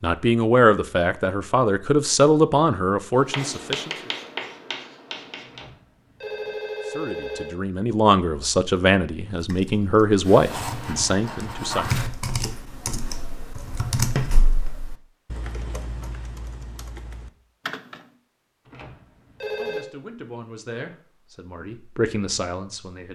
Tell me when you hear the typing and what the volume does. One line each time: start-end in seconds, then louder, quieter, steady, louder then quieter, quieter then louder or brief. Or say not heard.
9.3-18.1 louder then quieter.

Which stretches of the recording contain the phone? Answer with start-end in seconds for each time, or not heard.
5.5-7.5, 18.6-19.9.